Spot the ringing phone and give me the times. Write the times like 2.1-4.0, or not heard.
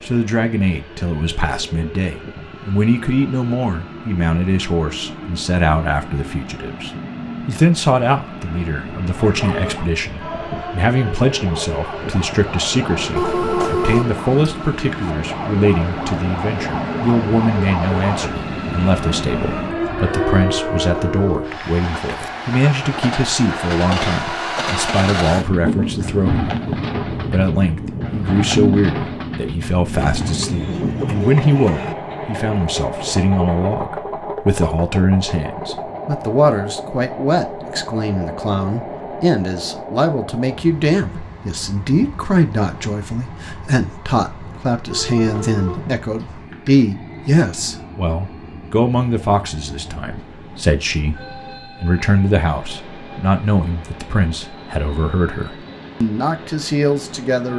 13.2-15.1, 20.6-21.5, 44.9-46.9.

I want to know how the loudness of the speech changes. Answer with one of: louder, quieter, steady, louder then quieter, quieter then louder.
steady.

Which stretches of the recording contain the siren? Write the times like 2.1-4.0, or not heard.
9.1-20.6.